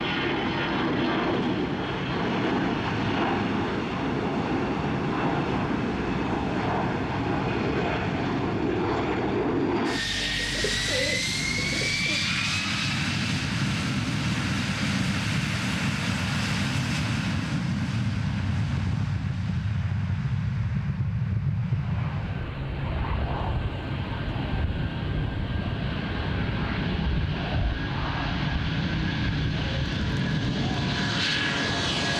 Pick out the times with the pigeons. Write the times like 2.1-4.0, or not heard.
10.2-12.2.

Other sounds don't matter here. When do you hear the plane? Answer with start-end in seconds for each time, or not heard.
0.0-32.1.